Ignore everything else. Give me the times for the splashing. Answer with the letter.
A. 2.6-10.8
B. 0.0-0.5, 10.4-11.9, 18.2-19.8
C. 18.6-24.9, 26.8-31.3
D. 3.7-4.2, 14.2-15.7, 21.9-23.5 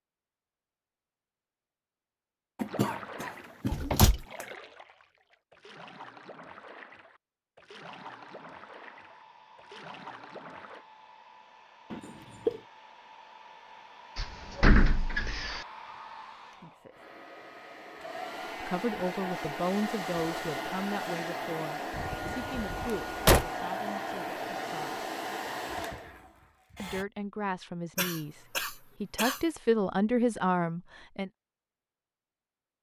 A.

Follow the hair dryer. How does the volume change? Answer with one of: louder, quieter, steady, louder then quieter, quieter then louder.
louder.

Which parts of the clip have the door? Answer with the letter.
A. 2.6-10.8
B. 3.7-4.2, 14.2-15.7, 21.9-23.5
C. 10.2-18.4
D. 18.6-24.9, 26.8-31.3
B.